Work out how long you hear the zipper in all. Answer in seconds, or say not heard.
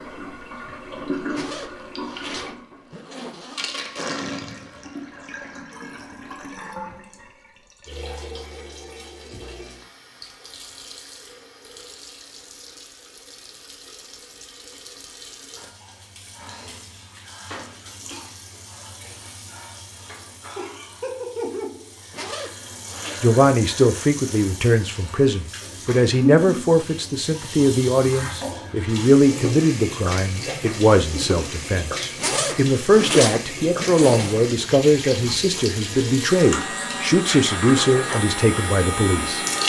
6 s.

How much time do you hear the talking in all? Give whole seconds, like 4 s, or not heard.
16 s.